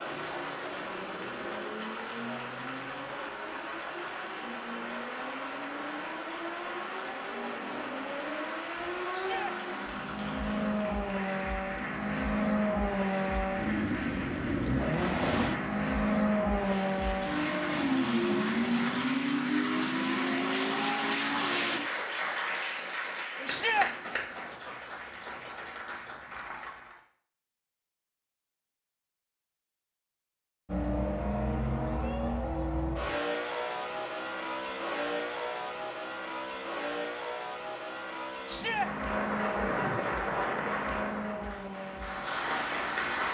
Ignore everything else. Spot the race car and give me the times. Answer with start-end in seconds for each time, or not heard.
0.0-21.8, 30.6-43.2.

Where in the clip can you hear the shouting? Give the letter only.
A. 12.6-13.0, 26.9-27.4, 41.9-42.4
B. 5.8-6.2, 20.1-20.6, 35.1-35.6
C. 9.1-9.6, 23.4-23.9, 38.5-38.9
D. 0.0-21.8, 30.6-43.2
C.